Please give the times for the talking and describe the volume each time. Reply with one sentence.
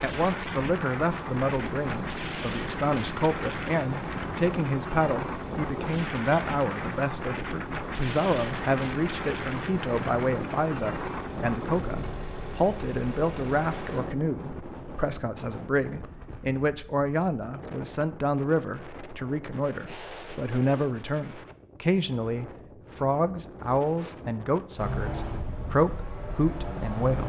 The talking can be heard from 0.0 to 27.2 s, at a steady volume.